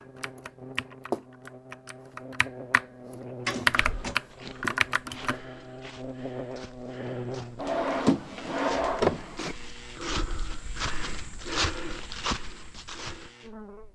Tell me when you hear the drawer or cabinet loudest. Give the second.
9 s.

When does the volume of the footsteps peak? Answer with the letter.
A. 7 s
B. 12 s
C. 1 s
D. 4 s
B.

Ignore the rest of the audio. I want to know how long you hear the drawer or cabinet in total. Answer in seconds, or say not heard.
3 s.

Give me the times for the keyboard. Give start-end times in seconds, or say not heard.
0.2-5.3.